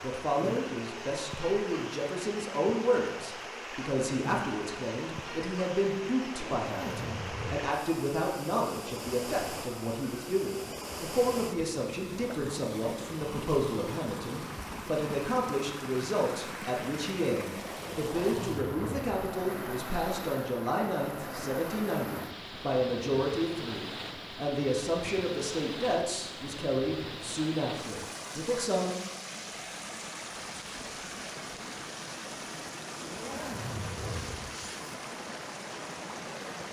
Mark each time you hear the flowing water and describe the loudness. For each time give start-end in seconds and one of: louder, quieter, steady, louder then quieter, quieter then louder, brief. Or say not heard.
0.0-36.6 steady.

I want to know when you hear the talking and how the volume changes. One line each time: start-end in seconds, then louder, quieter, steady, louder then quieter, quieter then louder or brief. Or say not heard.
0.0-29.0 steady.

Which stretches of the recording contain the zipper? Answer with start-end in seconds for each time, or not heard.
6.3-7.8, 18.0-19.2, 33.0-34.7.